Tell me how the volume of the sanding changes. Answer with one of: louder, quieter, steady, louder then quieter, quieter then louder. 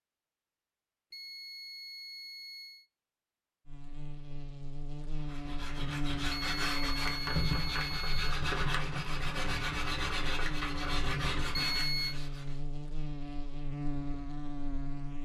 steady.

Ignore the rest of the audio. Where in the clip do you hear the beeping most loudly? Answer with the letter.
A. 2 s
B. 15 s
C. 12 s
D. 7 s
C.